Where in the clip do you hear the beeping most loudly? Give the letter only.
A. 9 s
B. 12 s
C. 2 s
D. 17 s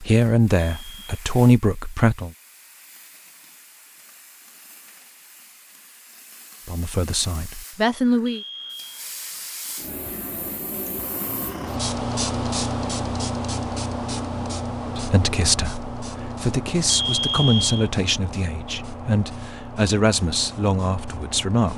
D.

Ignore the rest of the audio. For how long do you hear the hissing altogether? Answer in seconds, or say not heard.
22 s.